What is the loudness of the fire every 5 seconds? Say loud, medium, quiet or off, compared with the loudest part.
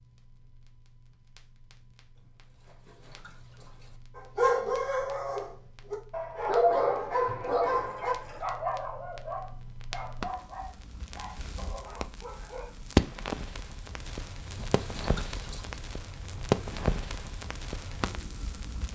quiet, quiet, loud, loud.